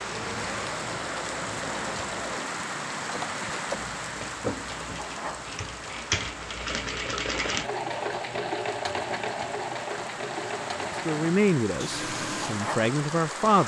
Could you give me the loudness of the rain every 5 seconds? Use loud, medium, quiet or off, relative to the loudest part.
loud, medium, loud.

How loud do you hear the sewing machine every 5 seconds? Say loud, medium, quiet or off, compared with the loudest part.
medium, loud, loud.